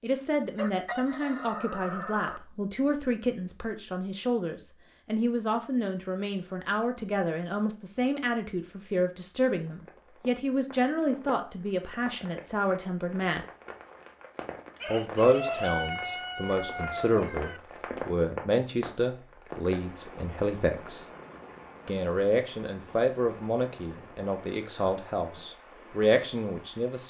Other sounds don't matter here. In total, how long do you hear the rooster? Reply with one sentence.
The rooster can be heard for 5 seconds in total.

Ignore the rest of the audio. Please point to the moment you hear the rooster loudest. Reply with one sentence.
The volume of the rooster peaks at 16 seconds.